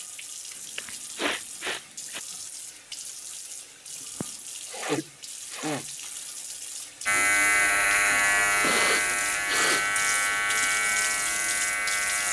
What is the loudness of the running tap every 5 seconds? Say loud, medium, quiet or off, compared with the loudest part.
medium, medium, loud.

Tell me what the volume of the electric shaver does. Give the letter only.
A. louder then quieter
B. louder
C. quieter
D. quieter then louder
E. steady
C.